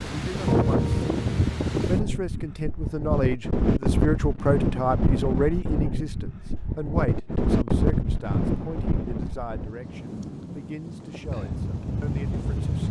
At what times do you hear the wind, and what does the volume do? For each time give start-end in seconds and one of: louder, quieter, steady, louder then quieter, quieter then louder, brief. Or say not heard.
0.0-12.8 quieter.